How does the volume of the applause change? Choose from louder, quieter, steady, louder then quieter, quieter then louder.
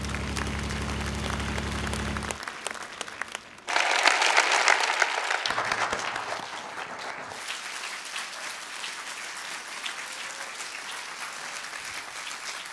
louder then quieter.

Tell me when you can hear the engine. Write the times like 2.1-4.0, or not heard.
0.0-2.5.